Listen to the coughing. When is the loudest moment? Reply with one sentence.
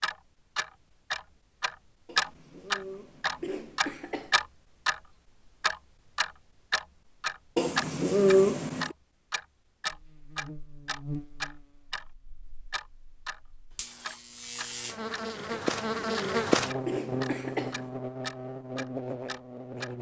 The loudest moment of the coughing is at 8 seconds.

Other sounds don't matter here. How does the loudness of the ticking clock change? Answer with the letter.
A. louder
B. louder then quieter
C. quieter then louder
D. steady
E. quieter
E.